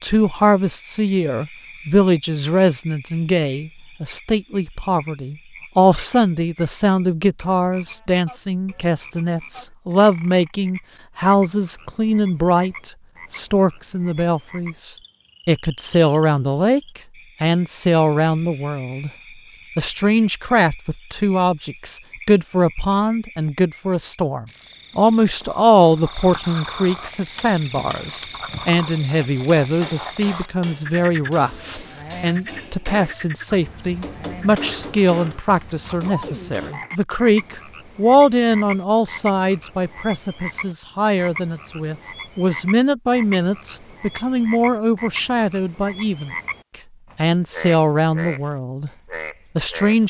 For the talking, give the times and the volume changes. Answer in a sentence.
You can hear the talking from 0.0 to 19.1 s, at a steady volume; from 19.8 to 46.4 s, at a steady volume; briefly from 47.1 to 48.9 s; and briefly from 49.5 to 50.0 s.